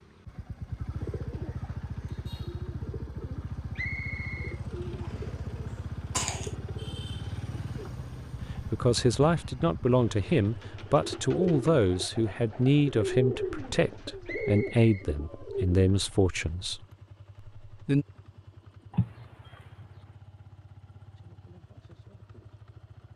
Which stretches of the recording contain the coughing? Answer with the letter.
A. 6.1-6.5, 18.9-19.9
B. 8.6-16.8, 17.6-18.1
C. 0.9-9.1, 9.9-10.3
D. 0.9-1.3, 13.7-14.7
A.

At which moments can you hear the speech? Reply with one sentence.
You can hear the speech from 8.6 to 16.8 s and from 17.6 to 18.1 s.